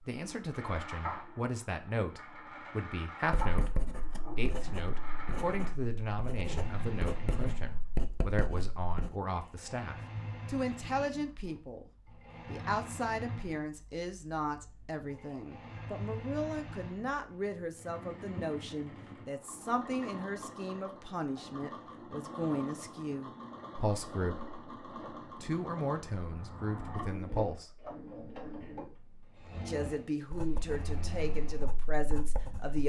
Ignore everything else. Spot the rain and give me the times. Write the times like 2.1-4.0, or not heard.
not heard.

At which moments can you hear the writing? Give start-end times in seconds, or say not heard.
3.2-9.2, 30.3-32.8.